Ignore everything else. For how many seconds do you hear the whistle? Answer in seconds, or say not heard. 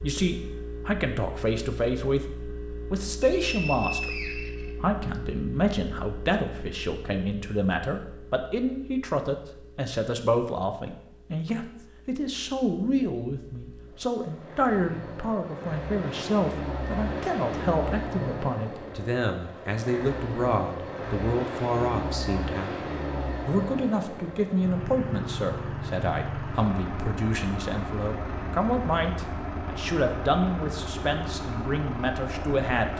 2 s.